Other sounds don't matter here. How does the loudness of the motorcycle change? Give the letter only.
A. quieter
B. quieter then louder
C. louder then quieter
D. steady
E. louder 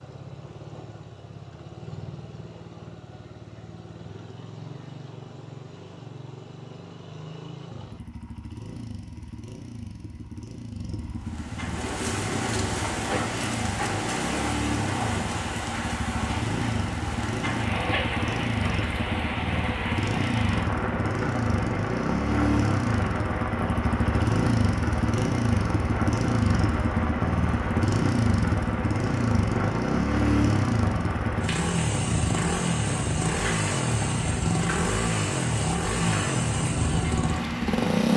E.